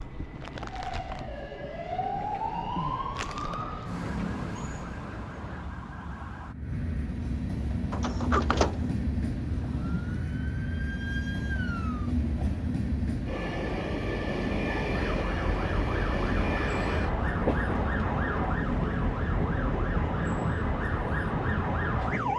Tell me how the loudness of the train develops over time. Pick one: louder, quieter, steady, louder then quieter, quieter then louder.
louder.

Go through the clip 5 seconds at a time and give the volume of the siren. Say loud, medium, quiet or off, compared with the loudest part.
loud, medium, medium, loud, loud.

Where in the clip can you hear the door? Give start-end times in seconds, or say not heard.
7.9-8.9.